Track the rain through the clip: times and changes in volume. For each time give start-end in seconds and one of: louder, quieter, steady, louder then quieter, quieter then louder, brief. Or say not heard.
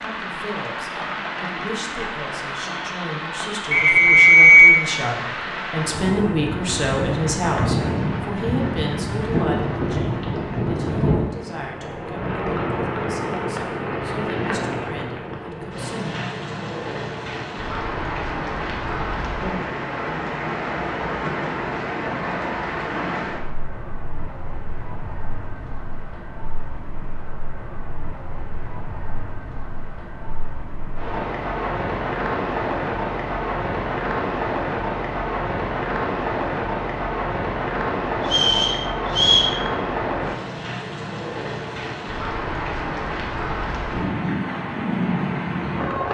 0.0-46.0 steady.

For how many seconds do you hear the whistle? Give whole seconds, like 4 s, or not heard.
2 s.